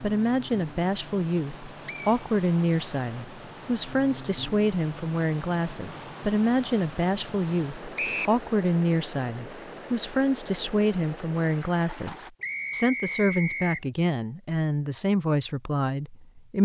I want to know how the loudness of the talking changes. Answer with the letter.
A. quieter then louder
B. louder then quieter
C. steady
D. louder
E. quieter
C.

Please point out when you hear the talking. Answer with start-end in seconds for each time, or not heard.
0.0-16.6.